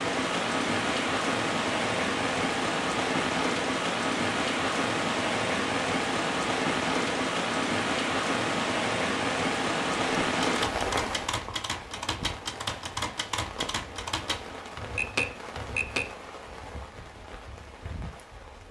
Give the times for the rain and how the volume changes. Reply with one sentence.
You can hear the rain from 0.0 to 18.6 s, getting quieter.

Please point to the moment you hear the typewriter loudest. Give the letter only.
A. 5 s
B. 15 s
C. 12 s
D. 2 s
B.